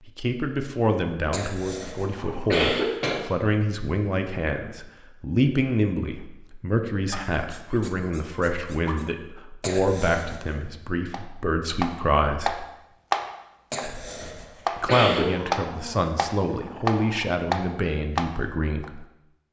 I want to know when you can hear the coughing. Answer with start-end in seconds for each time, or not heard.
1.3-3.2, 9.6-10.6, 13.7-15.3.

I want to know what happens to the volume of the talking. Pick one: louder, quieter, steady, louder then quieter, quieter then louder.
steady.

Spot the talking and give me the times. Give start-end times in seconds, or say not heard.
0.1-12.7, 14.8-19.1.